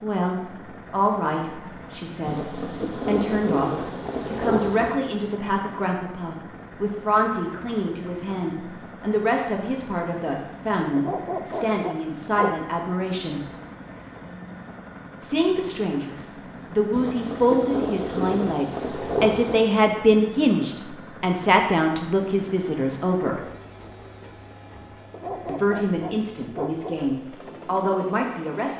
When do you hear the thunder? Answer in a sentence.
You can hear the thunder from 2.2 to 5.0 s and from 16.9 to 19.6 s.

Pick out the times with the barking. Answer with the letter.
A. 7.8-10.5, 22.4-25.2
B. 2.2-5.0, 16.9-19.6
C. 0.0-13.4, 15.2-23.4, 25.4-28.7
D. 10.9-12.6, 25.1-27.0
D.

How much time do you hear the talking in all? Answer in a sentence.
The talking can be heard for 25 seconds in total.